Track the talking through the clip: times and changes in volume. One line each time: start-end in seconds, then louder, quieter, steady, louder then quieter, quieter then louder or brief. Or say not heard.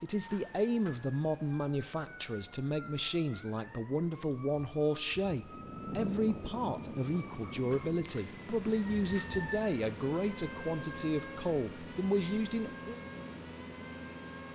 0.0-13.0 steady.